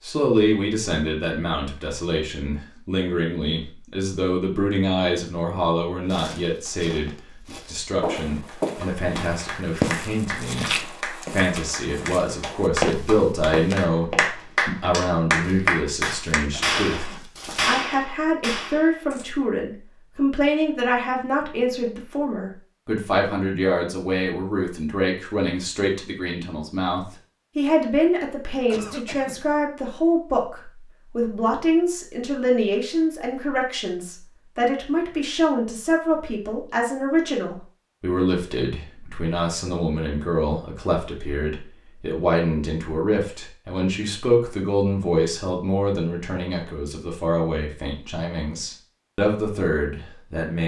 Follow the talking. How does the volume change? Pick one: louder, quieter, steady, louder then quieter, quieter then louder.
steady.